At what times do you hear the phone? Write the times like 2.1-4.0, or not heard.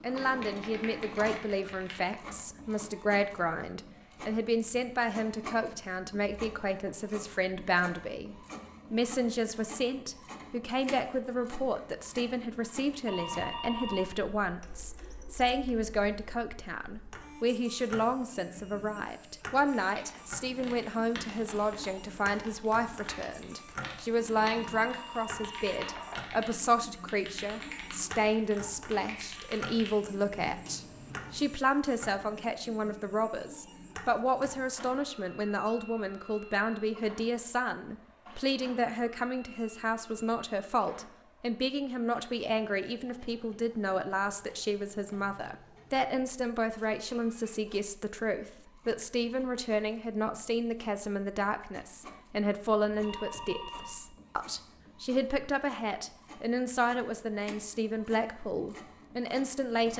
13.1-14.1, 24.4-26.2, 53.0-54.0.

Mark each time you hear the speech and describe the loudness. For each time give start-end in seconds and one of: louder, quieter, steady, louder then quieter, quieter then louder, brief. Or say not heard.
0.0-59.9 steady.